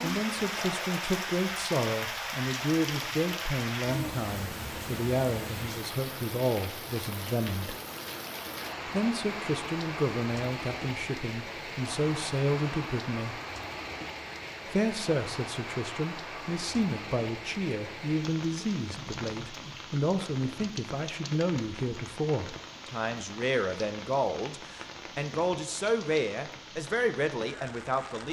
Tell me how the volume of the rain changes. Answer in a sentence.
The volume of the rain goes down.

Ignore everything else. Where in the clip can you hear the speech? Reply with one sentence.
You can hear the speech from 0.0 to 7.8 s, from 8.8 to 13.4 s and from 14.7 to 28.2 s.